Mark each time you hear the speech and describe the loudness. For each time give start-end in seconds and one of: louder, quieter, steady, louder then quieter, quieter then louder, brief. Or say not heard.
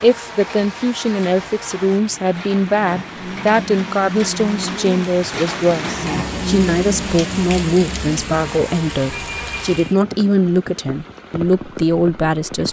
0.0-12.6 steady.